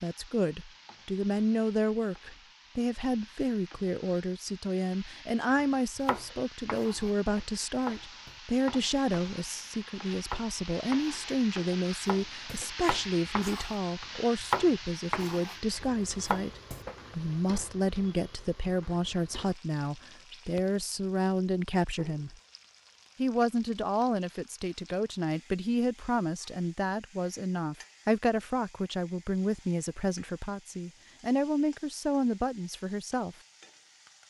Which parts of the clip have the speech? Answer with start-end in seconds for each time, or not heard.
0.0-22.4, 23.1-33.4.